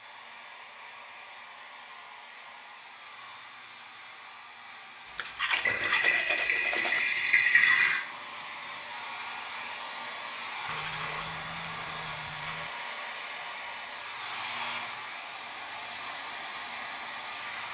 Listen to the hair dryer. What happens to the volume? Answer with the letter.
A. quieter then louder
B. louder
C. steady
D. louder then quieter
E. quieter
B.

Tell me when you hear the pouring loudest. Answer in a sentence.
The loudest moment of the pouring is at 8 seconds.